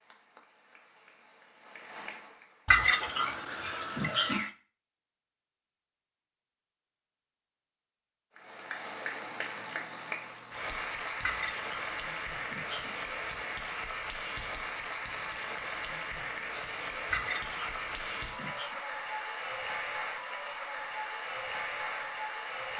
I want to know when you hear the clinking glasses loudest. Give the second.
3 s.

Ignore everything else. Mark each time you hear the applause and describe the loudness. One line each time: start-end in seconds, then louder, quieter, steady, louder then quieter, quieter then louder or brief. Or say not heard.
0.0-2.9 brief
8.3-22.7 steady.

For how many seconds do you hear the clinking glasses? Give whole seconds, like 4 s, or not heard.
5 s.